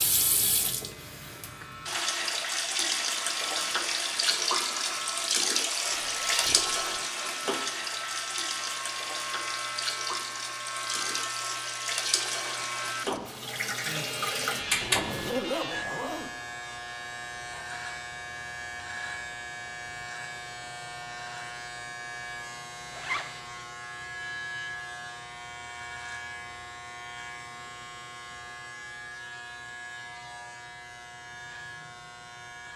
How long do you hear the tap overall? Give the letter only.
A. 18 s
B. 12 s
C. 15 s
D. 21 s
C.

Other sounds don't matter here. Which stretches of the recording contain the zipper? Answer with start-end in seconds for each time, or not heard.
5.9-6.8, 14.8-16.3, 22.9-23.4.